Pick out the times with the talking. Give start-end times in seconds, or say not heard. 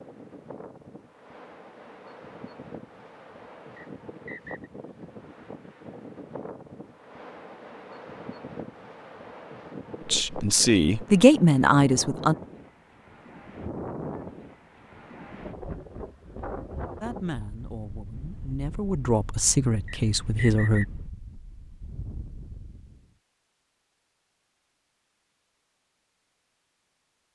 10.1-12.3, 17.0-20.9.